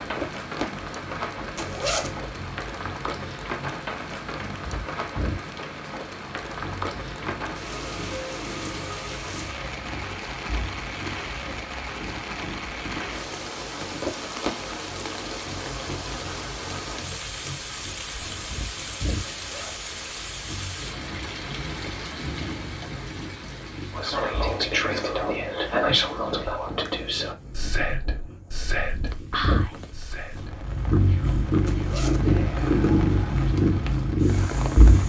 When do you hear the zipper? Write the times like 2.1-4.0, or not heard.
1.6-2.2, 19.4-19.9, 31.6-32.2.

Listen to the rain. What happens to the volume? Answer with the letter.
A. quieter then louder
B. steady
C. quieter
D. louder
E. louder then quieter
C.